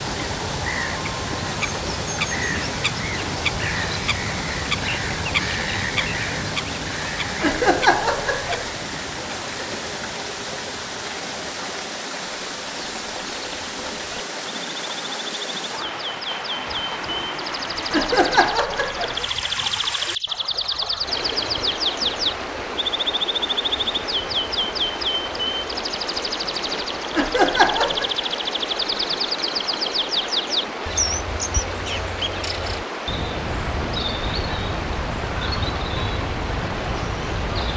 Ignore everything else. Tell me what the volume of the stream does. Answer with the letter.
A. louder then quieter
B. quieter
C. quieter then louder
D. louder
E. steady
E.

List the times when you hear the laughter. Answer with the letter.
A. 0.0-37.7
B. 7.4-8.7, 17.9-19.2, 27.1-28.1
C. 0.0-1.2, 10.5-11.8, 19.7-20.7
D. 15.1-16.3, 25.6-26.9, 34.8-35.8
B.